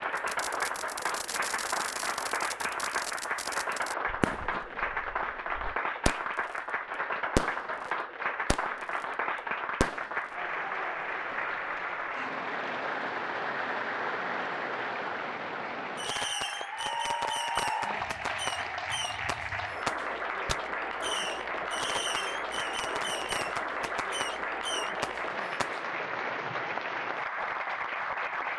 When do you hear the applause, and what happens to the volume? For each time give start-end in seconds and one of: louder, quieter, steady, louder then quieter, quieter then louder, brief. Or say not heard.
0.0-28.5 steady.